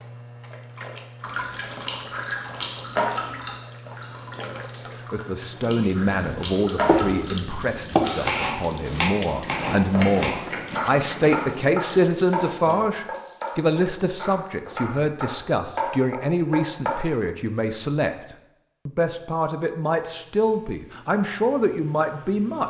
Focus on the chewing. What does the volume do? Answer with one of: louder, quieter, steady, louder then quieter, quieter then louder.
quieter then louder.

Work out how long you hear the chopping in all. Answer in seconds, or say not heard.
11 s.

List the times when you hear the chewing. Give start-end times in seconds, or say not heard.
1.2-11.4.